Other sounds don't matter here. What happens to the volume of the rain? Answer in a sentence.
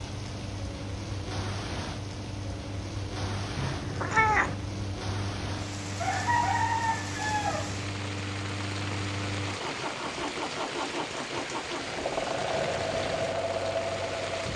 The loudness of the rain stays about the same.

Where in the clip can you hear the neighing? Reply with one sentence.
The neighing can't be heard in this clip.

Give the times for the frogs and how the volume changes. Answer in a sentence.
The frogs can't be heard in this clip.